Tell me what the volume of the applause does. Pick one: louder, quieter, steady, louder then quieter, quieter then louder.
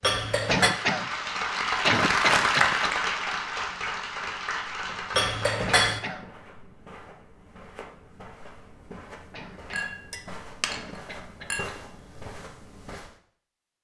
louder then quieter.